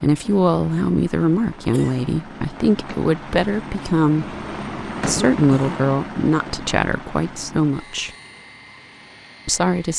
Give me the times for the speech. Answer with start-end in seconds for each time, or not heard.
0.0-4.3, 5.0-8.1, 9.4-9.9.